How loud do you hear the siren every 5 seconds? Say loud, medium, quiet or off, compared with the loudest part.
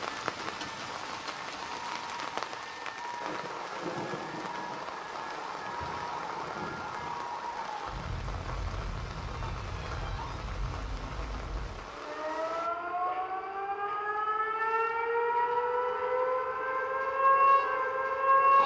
quiet, quiet, medium, loud.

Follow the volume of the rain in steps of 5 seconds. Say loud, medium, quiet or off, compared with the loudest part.
loud, loud, medium, off.